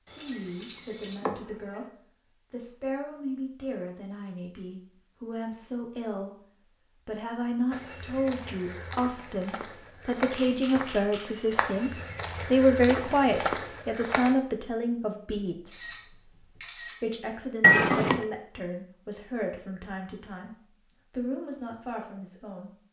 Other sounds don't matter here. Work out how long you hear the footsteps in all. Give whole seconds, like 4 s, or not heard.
7 s.